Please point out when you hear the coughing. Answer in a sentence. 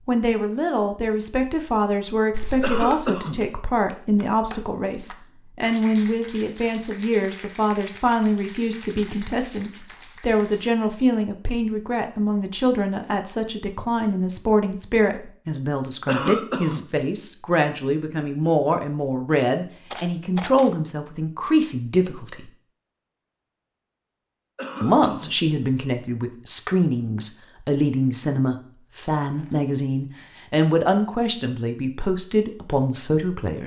The coughing can be heard from 2.6 to 3.4 s, from 16.1 to 16.9 s and from 24.6 to 25.4 s.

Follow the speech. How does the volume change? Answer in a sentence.
The loudness of the speech stays about the same.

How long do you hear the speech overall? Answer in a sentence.
The speech can be heard for 31 seconds in total.